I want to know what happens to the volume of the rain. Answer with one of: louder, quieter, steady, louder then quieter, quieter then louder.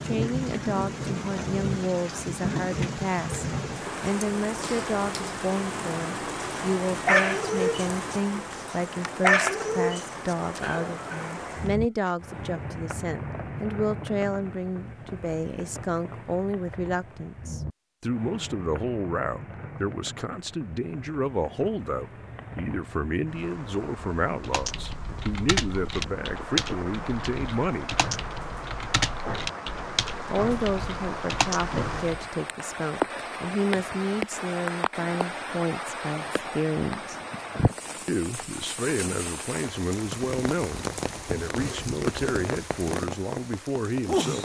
quieter then louder.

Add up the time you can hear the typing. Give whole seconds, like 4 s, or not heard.
8 s.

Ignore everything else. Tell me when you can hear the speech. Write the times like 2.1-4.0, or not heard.
0.0-27.9, 30.2-37.1, 38.0-44.4.